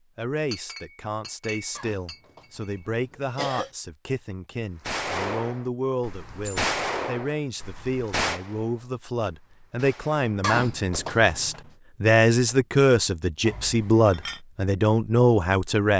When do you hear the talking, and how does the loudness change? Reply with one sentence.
You can hear the talking from 0.1 to 15.9 s, getting louder.